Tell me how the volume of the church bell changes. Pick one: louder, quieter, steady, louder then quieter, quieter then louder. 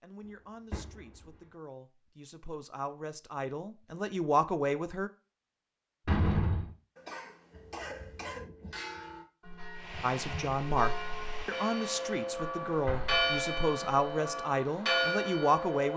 louder.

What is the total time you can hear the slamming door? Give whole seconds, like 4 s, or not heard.
2 s.